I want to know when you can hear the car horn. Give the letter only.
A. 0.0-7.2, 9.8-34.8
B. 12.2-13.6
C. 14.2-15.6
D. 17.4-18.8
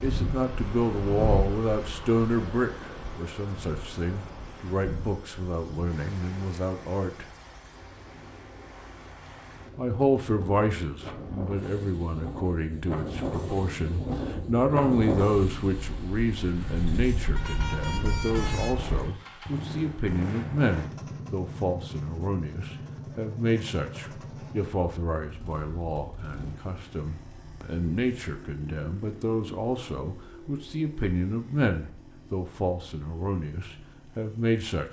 D.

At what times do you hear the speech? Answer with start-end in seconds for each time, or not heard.
0.0-7.2, 9.8-34.8.